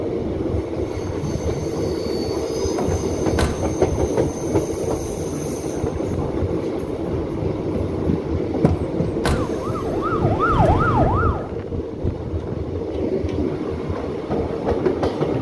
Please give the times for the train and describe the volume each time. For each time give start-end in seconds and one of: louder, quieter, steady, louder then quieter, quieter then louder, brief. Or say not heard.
0.0-15.3 steady.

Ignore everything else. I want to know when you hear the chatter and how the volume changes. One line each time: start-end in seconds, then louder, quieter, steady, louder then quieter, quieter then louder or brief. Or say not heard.
not heard.